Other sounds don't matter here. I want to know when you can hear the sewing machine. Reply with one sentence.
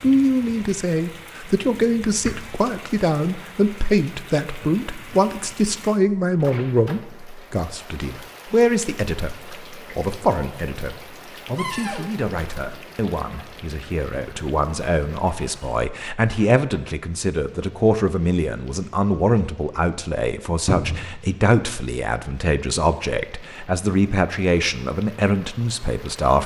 You can't hear the sewing machine here.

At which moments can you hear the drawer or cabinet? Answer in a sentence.
You can hear the drawer or cabinet from 1.4 to 2.5 s, from 11.6 to 12.1 s and from 20.6 to 21.1 s.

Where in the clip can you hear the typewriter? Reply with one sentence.
The typewriter can't be heard in this clip.